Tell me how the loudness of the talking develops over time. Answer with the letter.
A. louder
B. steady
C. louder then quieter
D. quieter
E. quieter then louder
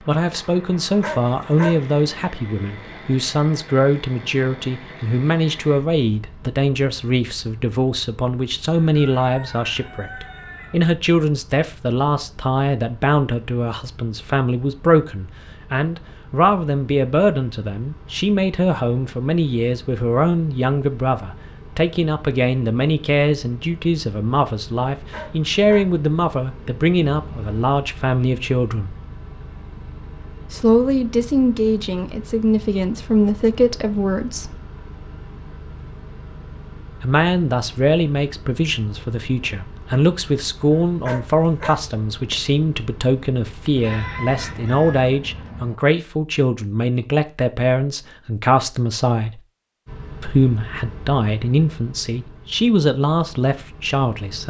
B.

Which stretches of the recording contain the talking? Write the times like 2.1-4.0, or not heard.
0.0-28.9, 30.5-34.6, 37.0-49.4, 50.2-54.4.